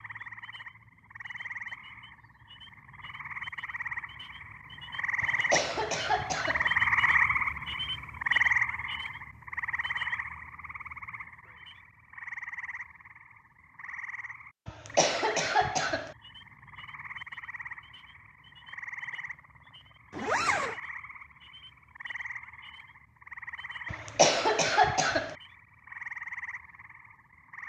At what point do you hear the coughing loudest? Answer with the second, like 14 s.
24 s.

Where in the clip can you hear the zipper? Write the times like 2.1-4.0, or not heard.
20.1-20.8.